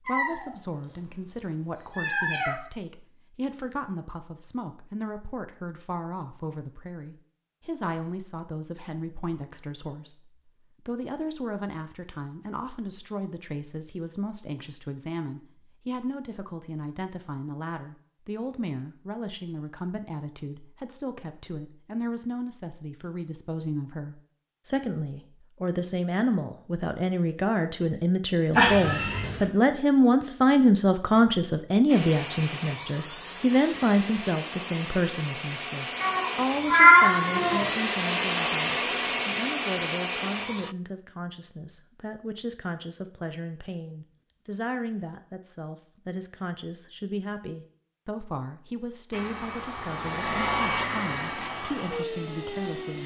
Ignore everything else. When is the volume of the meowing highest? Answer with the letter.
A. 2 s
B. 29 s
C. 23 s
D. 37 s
D.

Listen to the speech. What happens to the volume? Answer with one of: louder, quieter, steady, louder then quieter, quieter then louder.
louder then quieter.